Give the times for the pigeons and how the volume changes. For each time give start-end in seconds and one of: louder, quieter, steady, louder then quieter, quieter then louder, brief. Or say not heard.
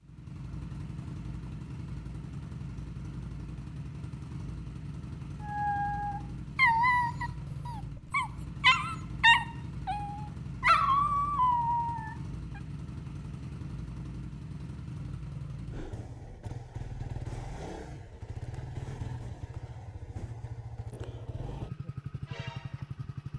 not heard.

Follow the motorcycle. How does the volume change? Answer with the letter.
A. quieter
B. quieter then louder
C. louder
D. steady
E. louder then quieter
D.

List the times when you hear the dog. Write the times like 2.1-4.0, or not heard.
5.5-12.2.